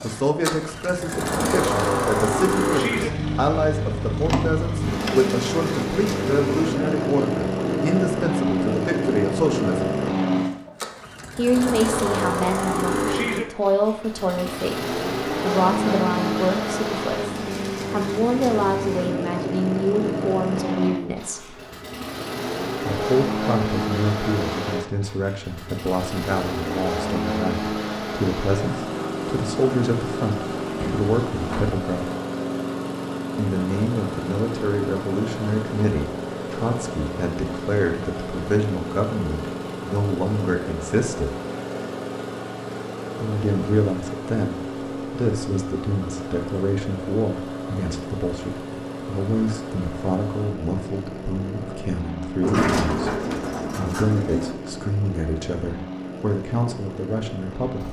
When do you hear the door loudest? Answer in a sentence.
The volume of the door peaks at 53 seconds.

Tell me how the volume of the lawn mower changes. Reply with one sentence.
The loudness of the lawn mower goes down.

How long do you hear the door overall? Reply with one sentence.
You can hear the door for 4 seconds altogether.